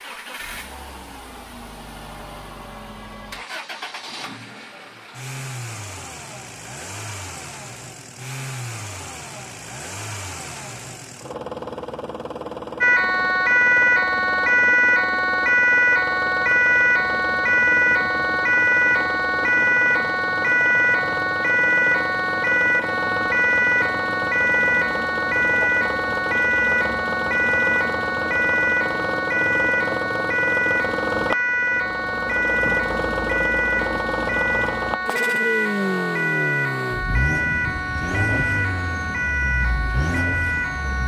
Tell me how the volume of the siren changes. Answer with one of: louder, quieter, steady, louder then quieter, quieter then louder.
quieter.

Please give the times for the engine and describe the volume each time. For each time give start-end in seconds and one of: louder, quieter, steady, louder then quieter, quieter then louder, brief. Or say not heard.
0.0-41.0 louder.